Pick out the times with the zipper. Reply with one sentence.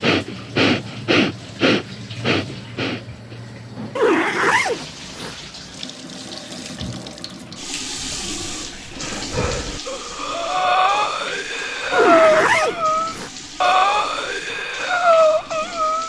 The zipper can be heard from 4.0 to 5.3 s and from 11.9 to 13.8 s.